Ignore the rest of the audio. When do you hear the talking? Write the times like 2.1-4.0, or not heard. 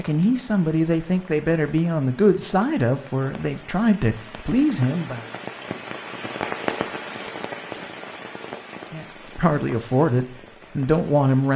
0.0-5.2, 8.9-11.5.